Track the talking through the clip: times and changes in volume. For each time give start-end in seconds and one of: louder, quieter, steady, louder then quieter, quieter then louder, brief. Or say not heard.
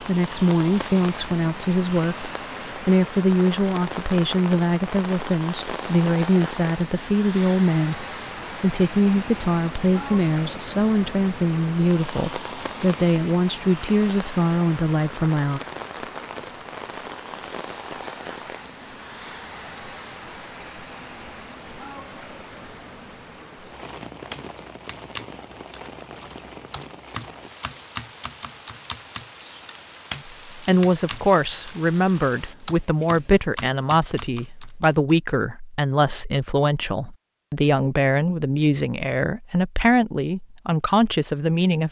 0.1-15.6 steady
30.4-41.8 steady.